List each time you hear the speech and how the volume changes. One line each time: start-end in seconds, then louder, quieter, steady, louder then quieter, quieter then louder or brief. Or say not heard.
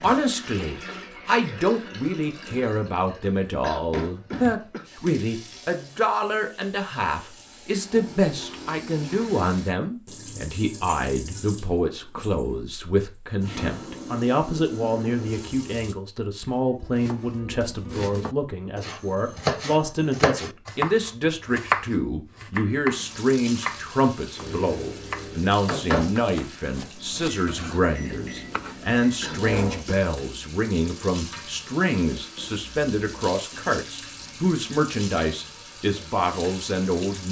0.0-37.2 steady.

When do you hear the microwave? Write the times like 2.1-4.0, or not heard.
24.4-29.9.